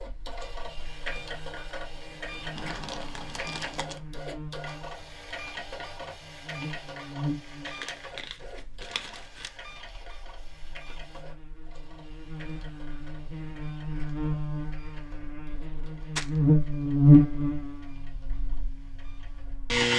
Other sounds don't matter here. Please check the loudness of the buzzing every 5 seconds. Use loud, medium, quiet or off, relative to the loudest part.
quiet, quiet, quiet, loud.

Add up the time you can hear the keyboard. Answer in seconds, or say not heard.
not heard.